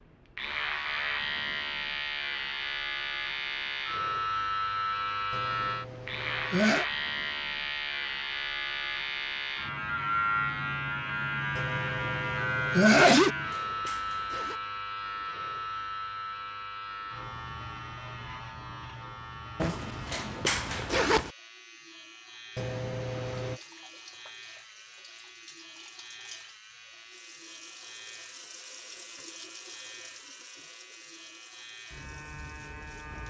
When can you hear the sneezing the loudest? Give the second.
13 s.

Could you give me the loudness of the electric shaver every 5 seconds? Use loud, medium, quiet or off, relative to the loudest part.
loud, loud, loud, medium, quiet, quiet, quiet.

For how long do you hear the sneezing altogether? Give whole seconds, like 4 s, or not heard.
4 s.